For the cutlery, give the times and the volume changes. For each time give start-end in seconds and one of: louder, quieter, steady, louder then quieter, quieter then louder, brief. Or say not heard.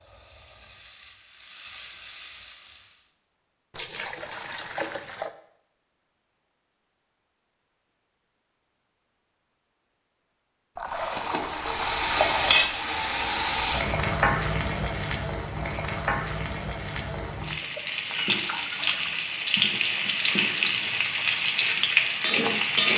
not heard.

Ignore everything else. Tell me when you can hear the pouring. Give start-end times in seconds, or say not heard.
3.8-5.3, 10.8-12.8, 17.6-19.2.